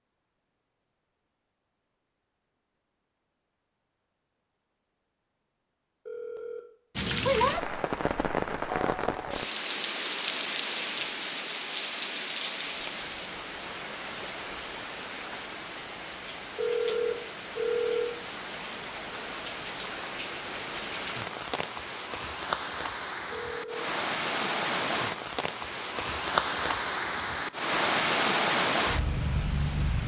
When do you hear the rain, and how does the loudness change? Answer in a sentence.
The rain can be heard from 7.0 to 30.0 s, getting quieter then louder.